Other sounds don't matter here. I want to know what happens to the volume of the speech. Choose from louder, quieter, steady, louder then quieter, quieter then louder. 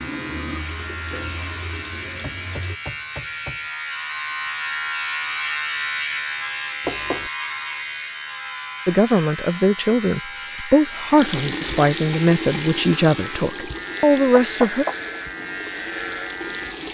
steady.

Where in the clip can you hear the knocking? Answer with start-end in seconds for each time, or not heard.
2.2-3.6, 6.8-7.3, 14.3-14.9.